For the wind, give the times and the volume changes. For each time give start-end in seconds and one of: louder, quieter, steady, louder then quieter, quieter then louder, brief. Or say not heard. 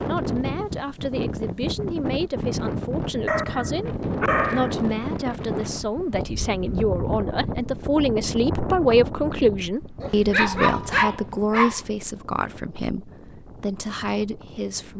0.0-14.9 quieter.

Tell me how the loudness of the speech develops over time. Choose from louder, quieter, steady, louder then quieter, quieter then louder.
louder then quieter.